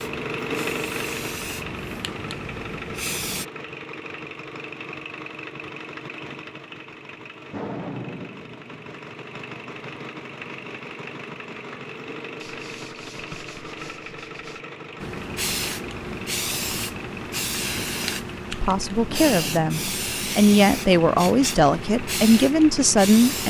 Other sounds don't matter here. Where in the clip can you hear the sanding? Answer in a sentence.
You can hear the sanding from 12.3 to 14.7 s.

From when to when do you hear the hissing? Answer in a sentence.
You can hear the hissing from 0.0 to 3.5 s and from 14.9 to 23.4 s.